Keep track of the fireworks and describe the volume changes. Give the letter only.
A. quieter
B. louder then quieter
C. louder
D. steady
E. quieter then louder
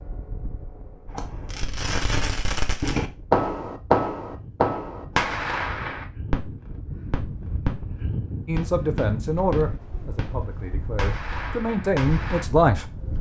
B.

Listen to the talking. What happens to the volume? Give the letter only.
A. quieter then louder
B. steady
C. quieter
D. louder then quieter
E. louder
A.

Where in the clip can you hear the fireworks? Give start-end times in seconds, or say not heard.
1.1-8.0, 8.6-12.4.